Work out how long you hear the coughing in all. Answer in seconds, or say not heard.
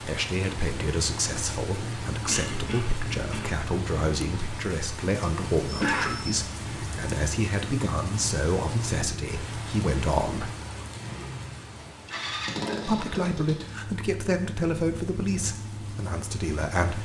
3 s.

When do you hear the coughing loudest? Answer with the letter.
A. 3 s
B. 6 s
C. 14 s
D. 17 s
B.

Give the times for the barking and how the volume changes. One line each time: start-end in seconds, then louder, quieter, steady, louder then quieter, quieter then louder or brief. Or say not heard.
not heard.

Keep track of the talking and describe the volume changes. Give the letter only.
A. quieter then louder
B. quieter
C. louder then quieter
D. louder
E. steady
E.